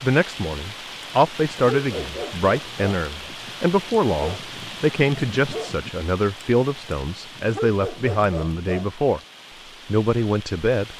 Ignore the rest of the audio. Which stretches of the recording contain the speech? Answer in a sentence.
The speech can be heard from 0.0 to 9.2 s and from 9.8 to 10.9 s.